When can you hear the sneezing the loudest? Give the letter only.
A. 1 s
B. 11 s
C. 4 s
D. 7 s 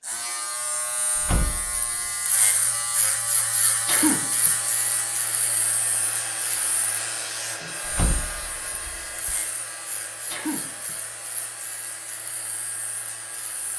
C.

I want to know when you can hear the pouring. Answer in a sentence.
You can't hear the pouring here.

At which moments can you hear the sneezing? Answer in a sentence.
The sneezing can be heard from 3.9 to 4.5 s and from 10.3 to 10.9 s.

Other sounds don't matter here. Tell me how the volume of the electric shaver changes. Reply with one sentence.
The loudness of the electric shaver goes down.